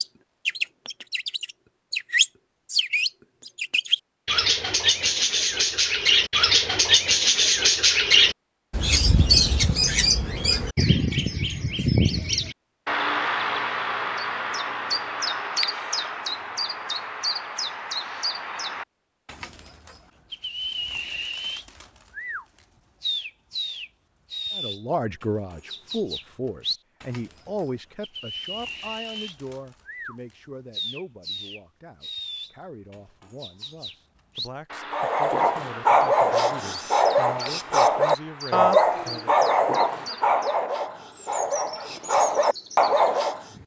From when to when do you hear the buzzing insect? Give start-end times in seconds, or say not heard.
not heard.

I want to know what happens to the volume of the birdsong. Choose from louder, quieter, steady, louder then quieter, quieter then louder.
quieter.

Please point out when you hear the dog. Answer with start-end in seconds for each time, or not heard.
34.9-43.5.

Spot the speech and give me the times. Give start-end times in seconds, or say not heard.
24.6-39.5.